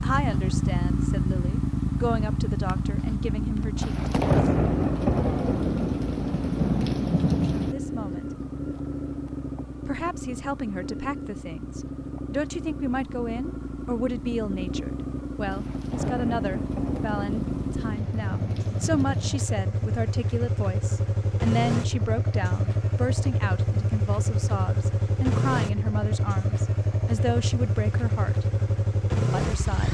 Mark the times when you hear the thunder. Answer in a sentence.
The thunder can be heard from 3.8 to 7.8 s and from 15.5 to 19.4 s.